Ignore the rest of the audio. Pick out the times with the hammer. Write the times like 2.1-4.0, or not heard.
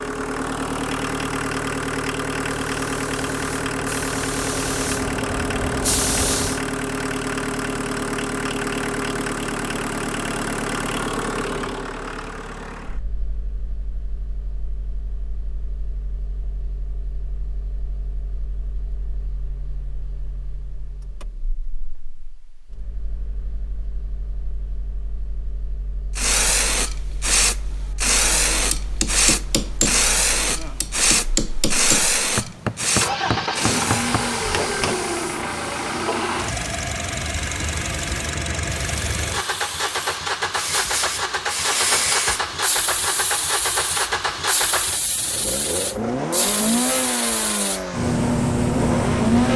28.2-35.0.